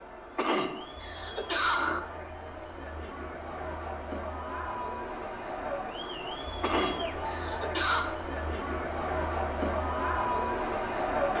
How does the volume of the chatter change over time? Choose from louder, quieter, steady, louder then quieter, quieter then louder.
louder.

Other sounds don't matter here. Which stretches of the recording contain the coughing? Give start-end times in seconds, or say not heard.
0.3-2.0, 6.6-8.2.